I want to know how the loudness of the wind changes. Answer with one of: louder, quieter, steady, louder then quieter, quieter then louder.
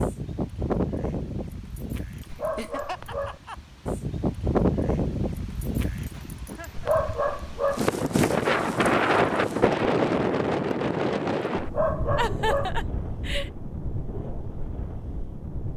louder then quieter.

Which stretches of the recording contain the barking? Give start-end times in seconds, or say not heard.
2.2-3.4, 6.8-7.8, 11.6-12.8.